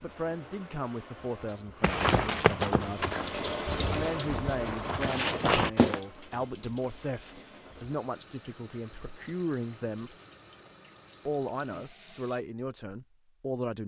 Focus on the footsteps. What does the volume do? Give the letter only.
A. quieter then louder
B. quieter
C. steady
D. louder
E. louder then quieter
A.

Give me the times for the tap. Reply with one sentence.
The tap can be heard from 0.0 to 12.4 s.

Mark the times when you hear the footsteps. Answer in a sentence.
The footsteps can be heard from 1.8 to 6.0 s.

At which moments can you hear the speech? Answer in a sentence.
You can hear the speech from 0.0 to 3.1 s, from 3.9 to 10.2 s and from 11.2 to 13.8 s.